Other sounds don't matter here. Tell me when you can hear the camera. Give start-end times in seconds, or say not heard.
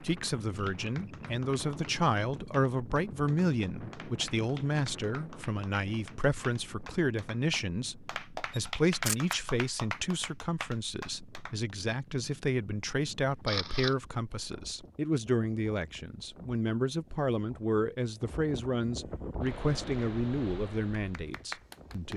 8.5-9.3, 13.3-14.1.